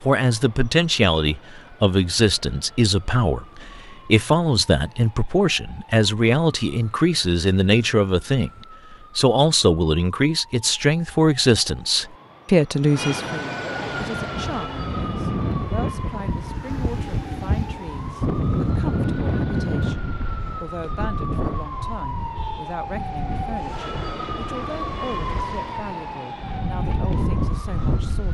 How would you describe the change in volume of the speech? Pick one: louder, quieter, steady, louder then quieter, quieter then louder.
quieter.